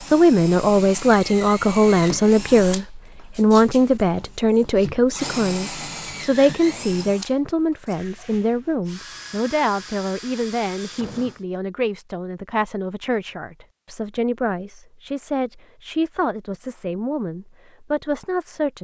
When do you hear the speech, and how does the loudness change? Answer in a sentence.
You can hear the speech from 0.1 to 18.7 s, getting quieter.